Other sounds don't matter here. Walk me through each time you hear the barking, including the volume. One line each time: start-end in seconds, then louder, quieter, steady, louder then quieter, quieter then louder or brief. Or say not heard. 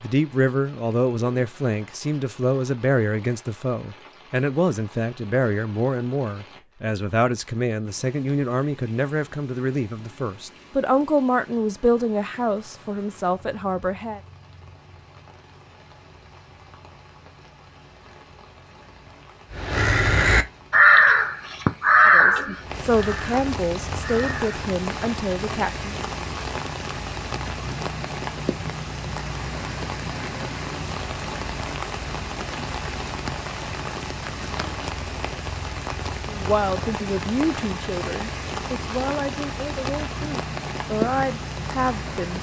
not heard.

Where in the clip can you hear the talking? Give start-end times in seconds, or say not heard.
0.0-14.2, 22.1-26.0, 36.2-42.3.